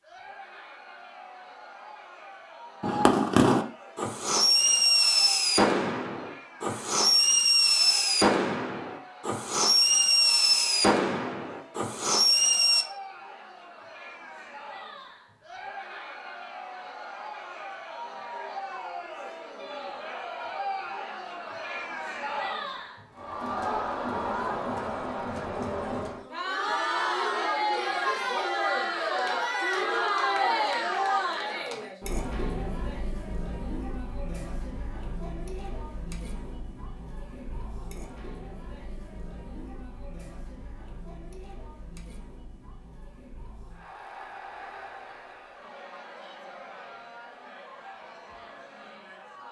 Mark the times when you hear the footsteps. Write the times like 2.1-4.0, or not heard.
not heard.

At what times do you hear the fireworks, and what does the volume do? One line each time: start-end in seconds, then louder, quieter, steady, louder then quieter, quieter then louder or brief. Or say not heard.
2.8-12.8 steady.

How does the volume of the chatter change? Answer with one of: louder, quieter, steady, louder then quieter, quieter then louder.
louder then quieter.